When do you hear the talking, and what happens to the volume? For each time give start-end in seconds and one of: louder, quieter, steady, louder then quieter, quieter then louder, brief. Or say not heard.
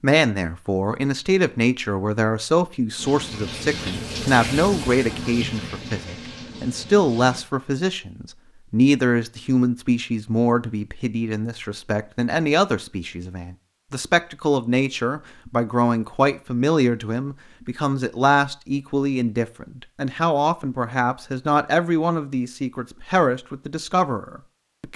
0.0-24.9 steady.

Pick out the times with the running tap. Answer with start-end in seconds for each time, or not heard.
3.0-7.5.